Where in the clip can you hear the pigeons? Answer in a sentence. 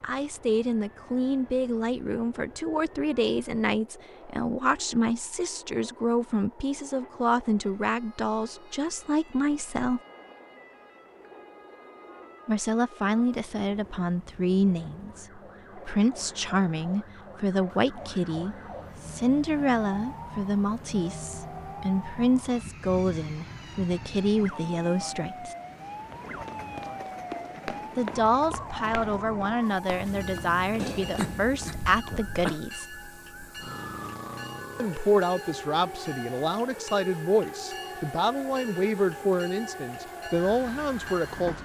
You can't hear the pigeons here.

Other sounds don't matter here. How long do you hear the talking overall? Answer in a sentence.
The talking can be heard for 35 seconds in total.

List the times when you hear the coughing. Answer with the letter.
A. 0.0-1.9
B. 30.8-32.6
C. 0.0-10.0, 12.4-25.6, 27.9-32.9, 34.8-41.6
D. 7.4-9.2
B.